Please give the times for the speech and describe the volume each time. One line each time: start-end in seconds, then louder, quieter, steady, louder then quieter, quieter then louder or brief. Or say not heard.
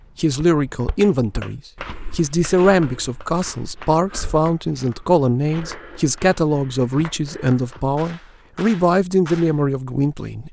0.1-10.4 steady.